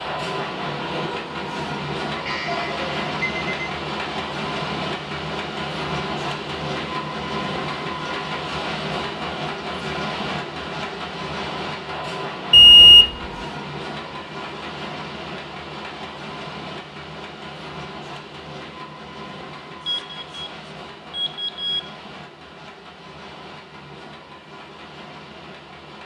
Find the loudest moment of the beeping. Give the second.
13 s.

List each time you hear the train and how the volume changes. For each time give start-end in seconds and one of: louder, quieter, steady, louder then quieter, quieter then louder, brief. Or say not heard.
0.0-26.0 quieter.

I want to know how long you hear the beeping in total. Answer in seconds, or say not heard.
4 s.